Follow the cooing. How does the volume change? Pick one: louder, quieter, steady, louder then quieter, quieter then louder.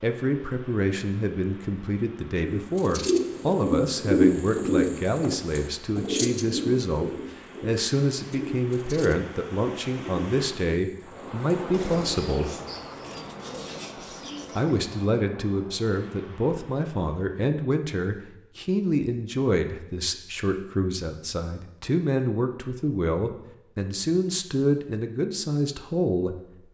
quieter.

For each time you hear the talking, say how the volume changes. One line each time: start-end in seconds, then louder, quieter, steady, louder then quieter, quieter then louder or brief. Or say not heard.
0.0-12.5 steady
14.6-26.4 steady.